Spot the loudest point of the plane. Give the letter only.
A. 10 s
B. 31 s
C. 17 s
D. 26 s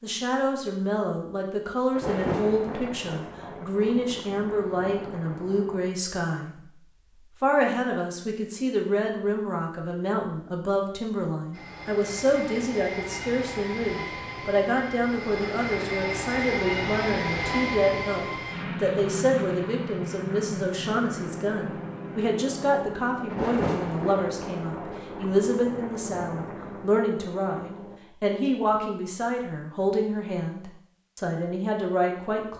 C.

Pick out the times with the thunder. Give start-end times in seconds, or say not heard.
1.9-5.9, 23.3-26.9.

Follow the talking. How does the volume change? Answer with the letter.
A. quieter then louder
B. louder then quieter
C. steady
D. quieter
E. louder
C.